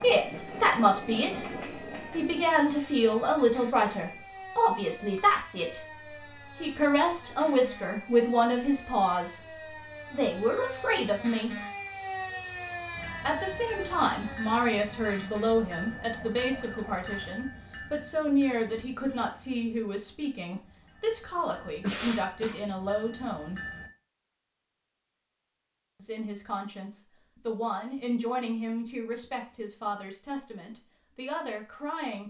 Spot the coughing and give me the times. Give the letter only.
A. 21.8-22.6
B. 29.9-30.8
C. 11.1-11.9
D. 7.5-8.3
A.